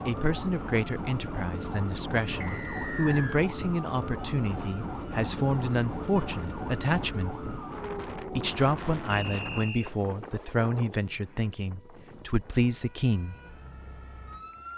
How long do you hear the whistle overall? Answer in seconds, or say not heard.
2 s.